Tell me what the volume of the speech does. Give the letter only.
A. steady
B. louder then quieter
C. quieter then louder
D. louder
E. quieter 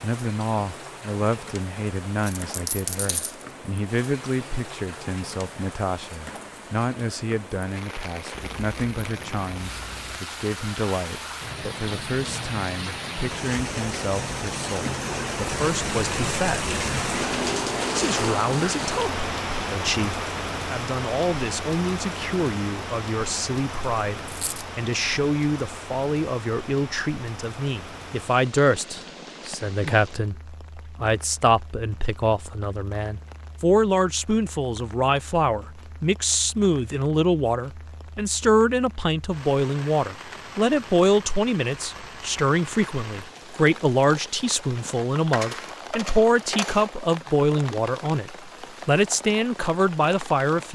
D.